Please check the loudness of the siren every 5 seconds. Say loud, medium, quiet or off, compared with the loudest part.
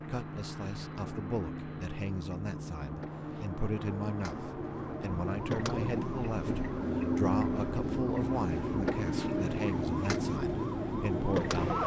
quiet, loud, loud.